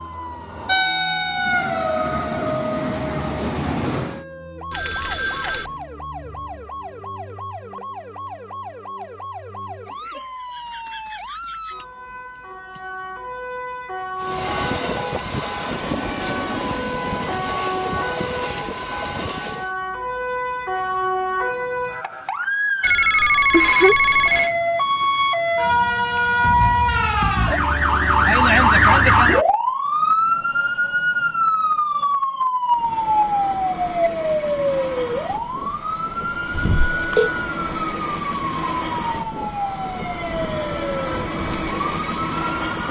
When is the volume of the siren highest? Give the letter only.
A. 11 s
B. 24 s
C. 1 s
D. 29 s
D.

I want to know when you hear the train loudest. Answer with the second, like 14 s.
1 s.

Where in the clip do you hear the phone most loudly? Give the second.
24 s.